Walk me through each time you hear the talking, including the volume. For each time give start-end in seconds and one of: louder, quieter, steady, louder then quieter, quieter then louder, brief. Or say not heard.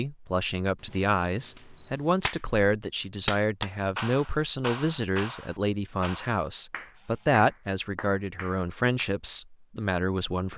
0.0-10.5 steady.